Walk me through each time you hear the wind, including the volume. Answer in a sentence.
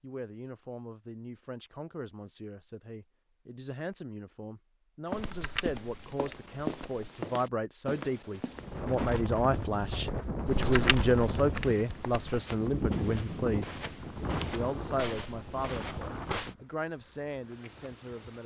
The wind can be heard from 8.5 to 18.4 s, getting quieter.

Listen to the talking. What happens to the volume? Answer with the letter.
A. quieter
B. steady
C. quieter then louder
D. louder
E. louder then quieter
E.